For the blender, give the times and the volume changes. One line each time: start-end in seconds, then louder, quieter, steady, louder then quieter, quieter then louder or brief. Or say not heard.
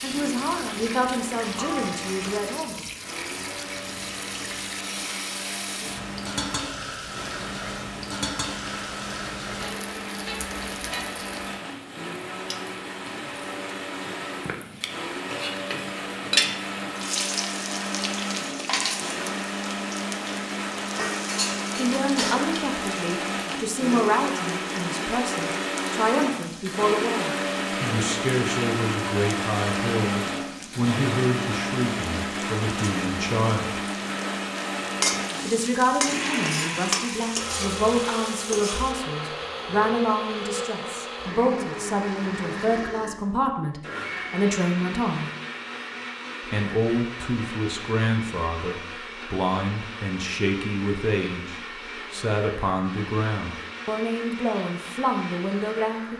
0.0-56.1 louder then quieter.